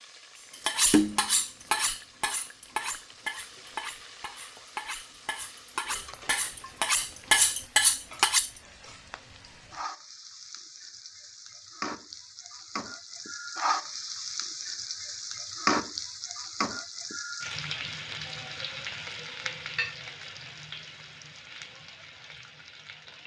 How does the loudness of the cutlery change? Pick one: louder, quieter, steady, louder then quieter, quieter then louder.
quieter then louder.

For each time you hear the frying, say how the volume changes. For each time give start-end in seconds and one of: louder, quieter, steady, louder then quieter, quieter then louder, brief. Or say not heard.
0.0-23.2 louder then quieter.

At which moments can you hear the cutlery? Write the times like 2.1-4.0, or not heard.
0.7-8.5.